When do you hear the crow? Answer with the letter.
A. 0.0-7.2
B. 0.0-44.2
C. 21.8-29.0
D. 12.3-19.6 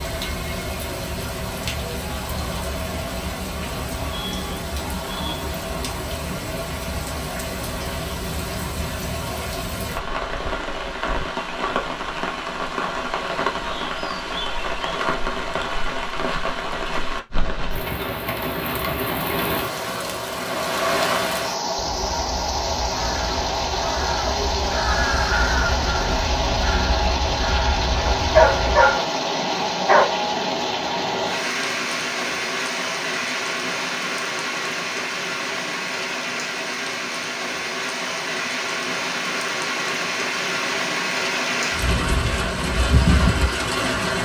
C.